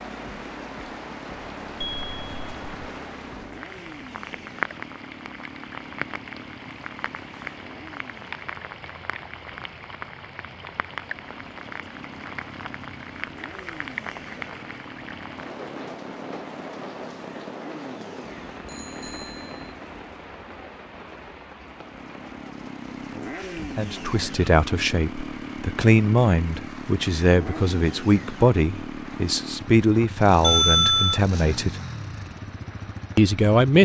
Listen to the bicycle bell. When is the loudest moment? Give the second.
31 s.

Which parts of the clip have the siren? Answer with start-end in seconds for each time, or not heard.
not heard.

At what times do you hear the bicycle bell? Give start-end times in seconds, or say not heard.
1.8-2.6, 18.6-19.7, 30.4-31.2.